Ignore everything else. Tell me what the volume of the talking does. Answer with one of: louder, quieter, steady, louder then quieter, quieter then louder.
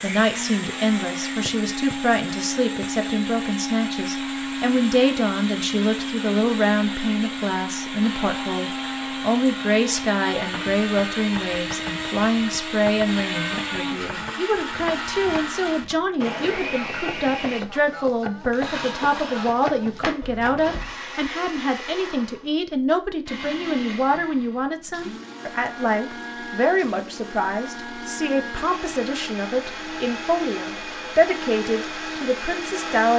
steady.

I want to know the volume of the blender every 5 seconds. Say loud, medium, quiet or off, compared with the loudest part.
loud, loud, loud, loud, medium, medium, loud.